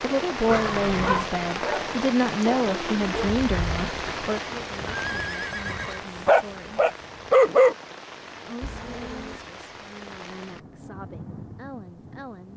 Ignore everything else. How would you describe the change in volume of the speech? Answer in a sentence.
The volume of the speech goes down.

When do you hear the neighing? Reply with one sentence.
The neighing can be heard from 0.5 to 1.2 s, from 4.8 to 6.0 s and from 8.6 to 9.5 s.